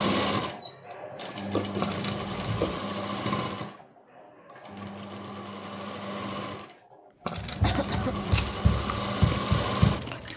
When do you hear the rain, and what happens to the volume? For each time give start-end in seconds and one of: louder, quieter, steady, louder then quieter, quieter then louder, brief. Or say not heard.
not heard.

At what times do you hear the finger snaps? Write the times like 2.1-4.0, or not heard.
not heard.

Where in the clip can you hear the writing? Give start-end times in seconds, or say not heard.
7.3-10.3.